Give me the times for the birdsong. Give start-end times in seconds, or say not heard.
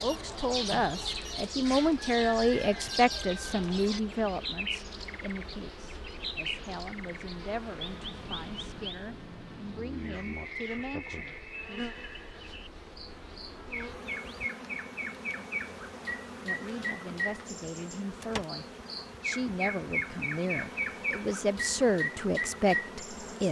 0.0-23.4.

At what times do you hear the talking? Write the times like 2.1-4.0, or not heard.
0.0-11.8, 16.4-23.4.